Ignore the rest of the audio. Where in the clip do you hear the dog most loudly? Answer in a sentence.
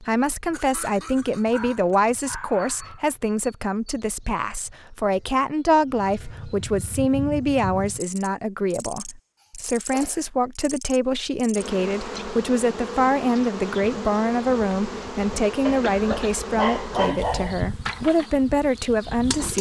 The loudest moment of the dog is at 17 seconds.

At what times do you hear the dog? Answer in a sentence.
You can hear the dog from 1.4 to 3.0 s and from 15.7 to 17.6 s.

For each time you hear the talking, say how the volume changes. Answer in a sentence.
The talking can be heard from 0.0 to 19.5 s, at a steady volume.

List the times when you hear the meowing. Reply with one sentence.
The meowing can't be heard in this clip.